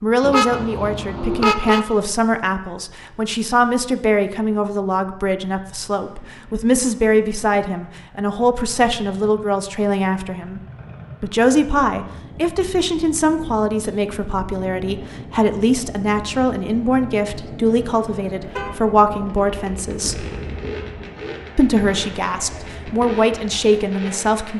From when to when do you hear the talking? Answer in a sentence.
The talking can be heard from 0.0 to 10.6 s, from 11.2 to 20.2 s and from 21.6 to 24.5 s.